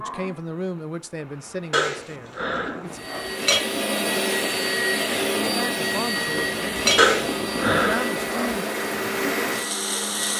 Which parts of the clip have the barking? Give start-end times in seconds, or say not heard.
1.7-3.6, 7.0-8.6.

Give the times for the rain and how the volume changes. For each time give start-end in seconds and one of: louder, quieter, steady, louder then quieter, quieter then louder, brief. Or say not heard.
0.0-10.3 louder.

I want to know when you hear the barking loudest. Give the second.
7 s.